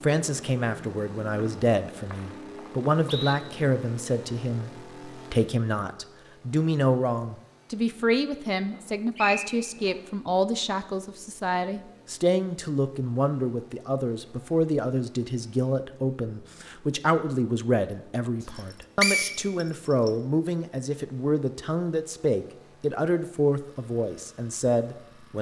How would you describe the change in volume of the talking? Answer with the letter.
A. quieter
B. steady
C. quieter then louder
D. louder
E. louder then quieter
B.